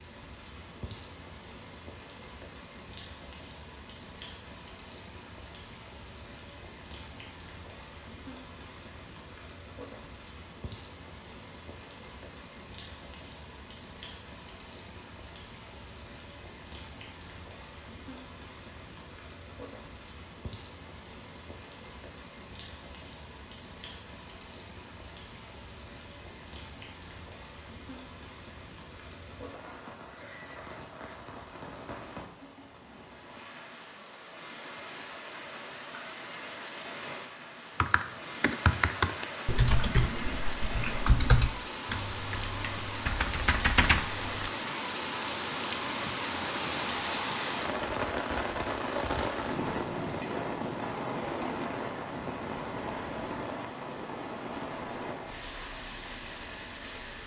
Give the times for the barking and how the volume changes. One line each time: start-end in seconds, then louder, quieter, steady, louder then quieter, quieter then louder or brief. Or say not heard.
not heard.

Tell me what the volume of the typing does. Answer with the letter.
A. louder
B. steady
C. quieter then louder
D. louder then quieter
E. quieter
C.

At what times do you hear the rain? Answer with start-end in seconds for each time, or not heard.
0.0-57.2.